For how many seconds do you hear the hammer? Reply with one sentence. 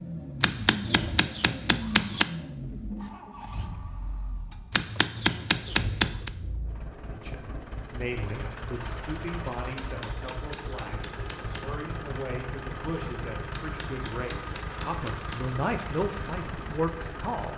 The hammer can be heard for 7 seconds in total.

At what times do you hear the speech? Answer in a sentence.
The speech can be heard from 7.1 to 17.5 s.